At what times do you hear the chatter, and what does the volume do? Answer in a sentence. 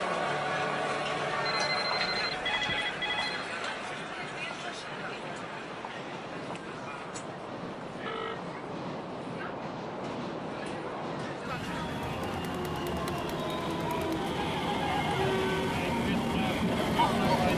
You can hear the chatter from 0.0 to 17.5 s, getting quieter then louder.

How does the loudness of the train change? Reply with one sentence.
The volume of the train goes up.